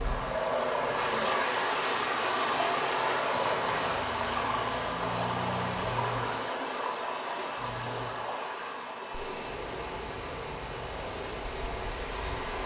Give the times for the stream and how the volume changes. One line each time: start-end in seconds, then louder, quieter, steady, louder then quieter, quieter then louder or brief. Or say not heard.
0.0-12.6 quieter.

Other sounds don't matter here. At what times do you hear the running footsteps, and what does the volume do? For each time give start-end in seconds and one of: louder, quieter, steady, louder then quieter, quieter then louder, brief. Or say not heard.
not heard.